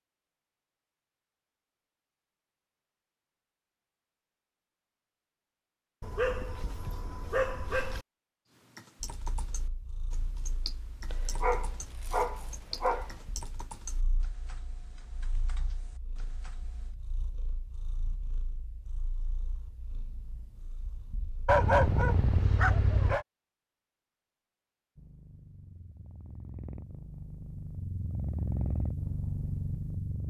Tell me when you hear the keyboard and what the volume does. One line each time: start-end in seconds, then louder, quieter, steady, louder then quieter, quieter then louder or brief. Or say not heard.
8.5-16.9 quieter.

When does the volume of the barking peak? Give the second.
22 s.